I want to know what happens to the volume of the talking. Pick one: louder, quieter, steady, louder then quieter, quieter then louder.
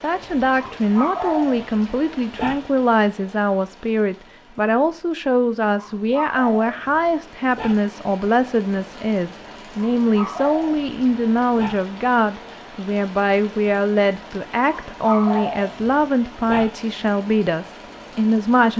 steady.